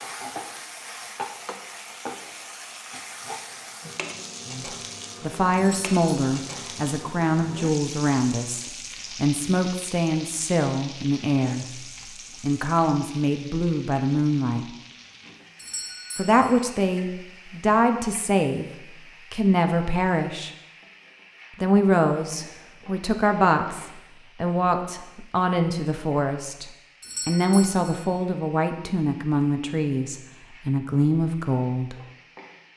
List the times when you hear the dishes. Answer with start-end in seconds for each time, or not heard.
not heard.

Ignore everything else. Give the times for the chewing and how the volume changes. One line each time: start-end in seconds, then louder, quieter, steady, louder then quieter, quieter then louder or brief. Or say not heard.
not heard.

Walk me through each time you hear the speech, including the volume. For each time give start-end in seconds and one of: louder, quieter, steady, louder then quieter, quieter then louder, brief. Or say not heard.
4.5-14.7 steady
16.1-18.6 brief
19.3-20.5 brief
21.6-31.9 steady.